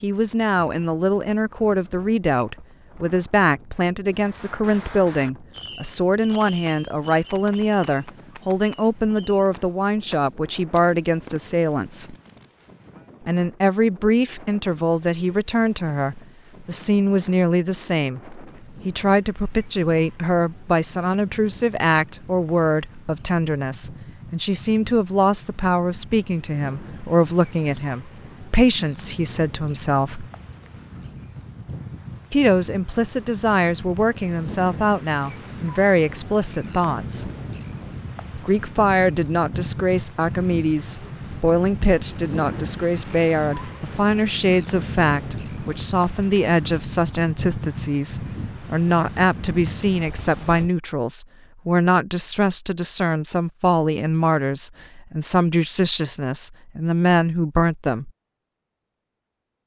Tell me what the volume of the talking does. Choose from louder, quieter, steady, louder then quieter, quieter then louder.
steady.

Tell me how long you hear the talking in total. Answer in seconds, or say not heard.
54 s.